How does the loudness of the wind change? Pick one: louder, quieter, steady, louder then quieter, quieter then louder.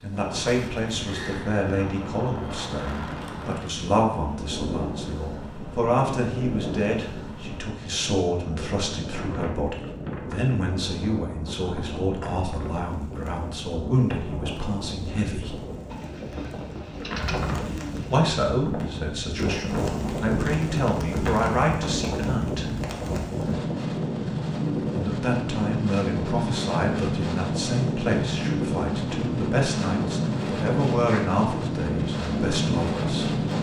louder.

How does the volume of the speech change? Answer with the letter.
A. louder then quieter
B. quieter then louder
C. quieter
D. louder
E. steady
E.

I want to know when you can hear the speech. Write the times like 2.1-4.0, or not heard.
0.0-15.6, 18.1-22.7, 24.9-33.3.